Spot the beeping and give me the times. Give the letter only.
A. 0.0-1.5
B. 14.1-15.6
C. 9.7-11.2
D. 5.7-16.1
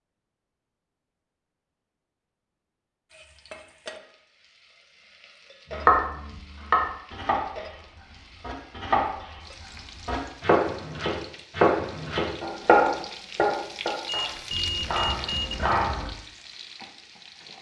B.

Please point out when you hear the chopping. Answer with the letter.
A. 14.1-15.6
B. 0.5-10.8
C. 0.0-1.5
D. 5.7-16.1
D.